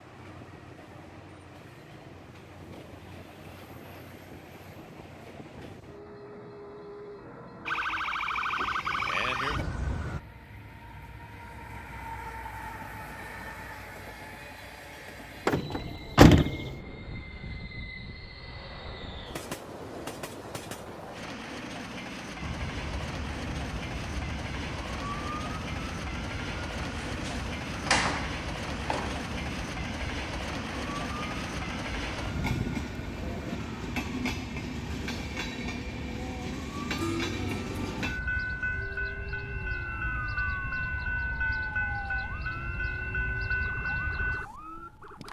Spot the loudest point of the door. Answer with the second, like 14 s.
16 s.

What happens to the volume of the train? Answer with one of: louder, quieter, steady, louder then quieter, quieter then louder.
louder.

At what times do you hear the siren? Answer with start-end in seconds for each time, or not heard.
7.7-10.2, 22.4-45.2.